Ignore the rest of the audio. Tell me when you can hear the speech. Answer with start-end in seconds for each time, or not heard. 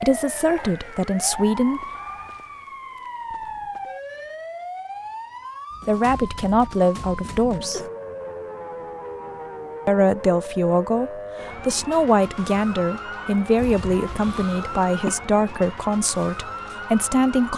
0.0-1.8, 5.8-7.8, 9.8-17.5.